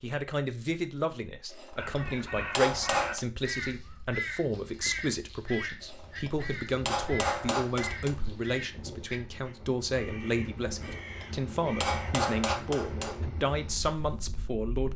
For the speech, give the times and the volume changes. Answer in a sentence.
The speech can be heard from 0.0 to 14.9 s, at a steady volume.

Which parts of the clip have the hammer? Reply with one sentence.
You can hear the hammer from 1.5 to 3.2 s, from 5.8 to 8.2 s and from 10.8 to 13.2 s.